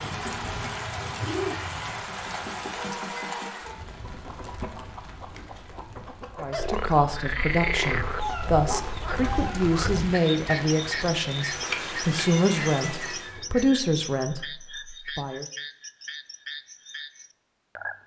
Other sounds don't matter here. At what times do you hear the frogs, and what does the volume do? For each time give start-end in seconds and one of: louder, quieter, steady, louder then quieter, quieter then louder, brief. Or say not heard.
6.5-18.0 quieter.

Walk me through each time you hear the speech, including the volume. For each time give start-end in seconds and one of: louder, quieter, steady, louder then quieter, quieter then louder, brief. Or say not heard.
6.4-15.4 steady.